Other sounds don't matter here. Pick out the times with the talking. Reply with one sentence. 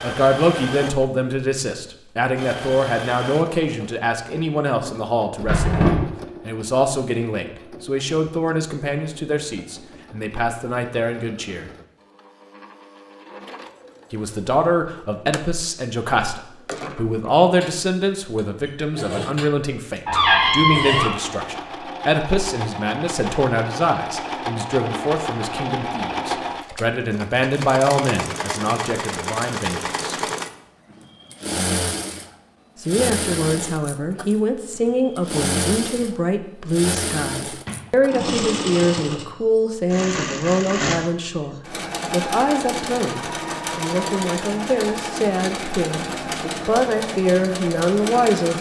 You can hear the talking from 0.0 to 11.7 s, from 14.1 to 30.1 s and from 32.8 to 48.5 s.